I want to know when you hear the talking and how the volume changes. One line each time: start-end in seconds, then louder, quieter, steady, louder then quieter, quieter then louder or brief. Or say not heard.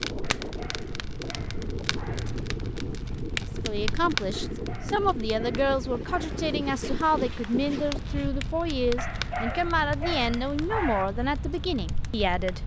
3.6-12.6 steady.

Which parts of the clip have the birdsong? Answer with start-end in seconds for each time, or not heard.
not heard.